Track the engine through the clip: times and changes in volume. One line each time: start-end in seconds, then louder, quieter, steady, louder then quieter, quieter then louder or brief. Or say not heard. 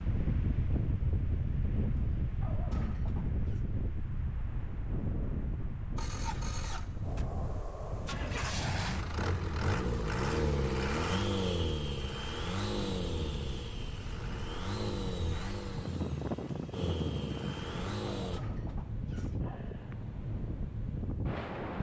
6.0-18.4 louder then quieter.